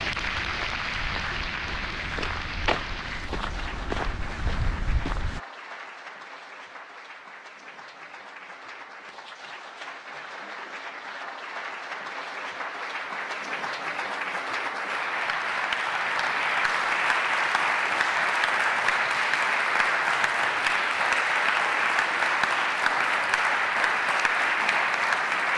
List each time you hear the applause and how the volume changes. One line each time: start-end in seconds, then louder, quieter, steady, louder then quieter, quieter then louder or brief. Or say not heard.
0.0-25.5 quieter then louder.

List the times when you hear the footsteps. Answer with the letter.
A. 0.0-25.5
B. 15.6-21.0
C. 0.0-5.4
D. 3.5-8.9
C.